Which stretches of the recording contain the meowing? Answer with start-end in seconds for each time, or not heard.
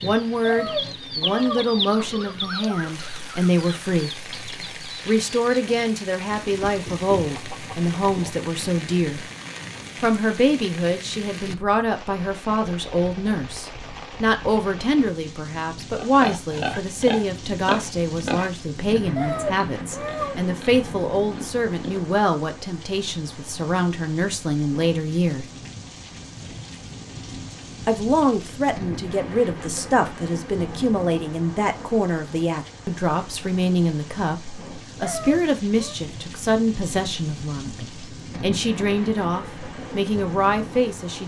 0.5-1.8, 19.1-20.4, 35.0-36.0.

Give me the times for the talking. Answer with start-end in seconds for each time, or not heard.
0.0-9.2, 10.0-25.4, 27.9-41.2.